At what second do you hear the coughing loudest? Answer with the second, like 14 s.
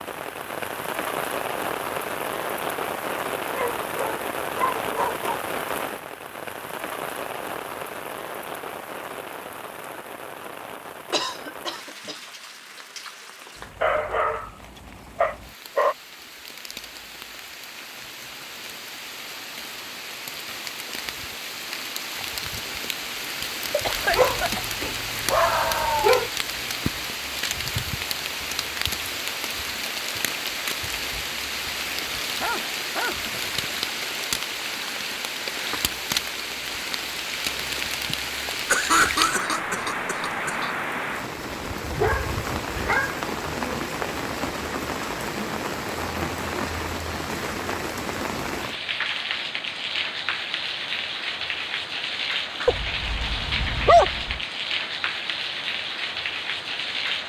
39 s.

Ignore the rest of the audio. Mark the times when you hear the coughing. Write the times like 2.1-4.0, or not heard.
11.1-12.2, 23.7-24.6, 38.7-40.8.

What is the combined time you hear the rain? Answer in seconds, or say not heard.
57 s.